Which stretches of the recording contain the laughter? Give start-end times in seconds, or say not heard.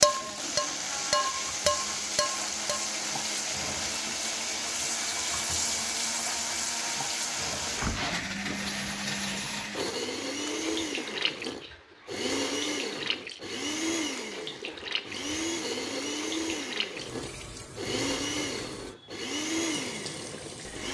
not heard.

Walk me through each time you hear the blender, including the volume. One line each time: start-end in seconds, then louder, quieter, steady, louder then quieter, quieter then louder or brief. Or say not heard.
0.0-20.8 steady.